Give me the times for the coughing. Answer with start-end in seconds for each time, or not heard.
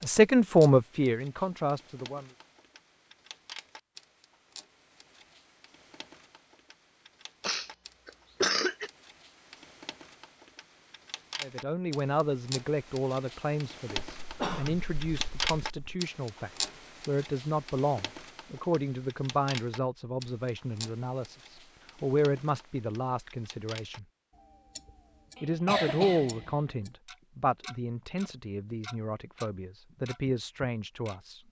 7.5-8.9, 14.2-16.0, 25.4-26.5.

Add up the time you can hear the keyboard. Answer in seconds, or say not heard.
not heard.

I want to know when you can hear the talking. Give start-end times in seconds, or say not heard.
0.0-2.3, 11.4-24.1, 25.4-31.4.